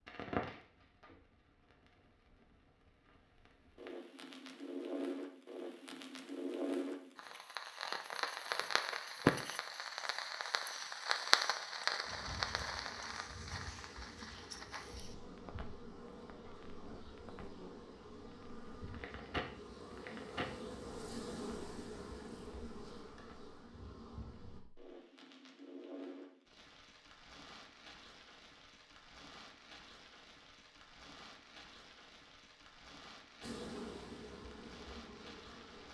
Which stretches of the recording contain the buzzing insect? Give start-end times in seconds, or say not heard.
12.1-24.6, 33.4-35.8.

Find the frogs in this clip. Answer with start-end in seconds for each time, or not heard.
not heard.